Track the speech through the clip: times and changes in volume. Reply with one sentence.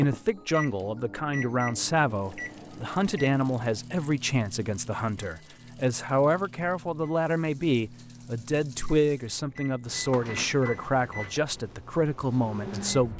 You can hear the speech from 0.0 to 13.1 s, at a steady volume.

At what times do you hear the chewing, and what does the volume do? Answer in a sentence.
You can't hear the chewing here.